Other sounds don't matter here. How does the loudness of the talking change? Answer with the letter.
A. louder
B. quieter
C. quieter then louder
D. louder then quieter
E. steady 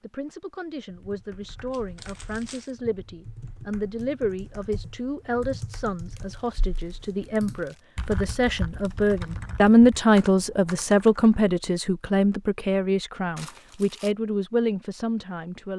D.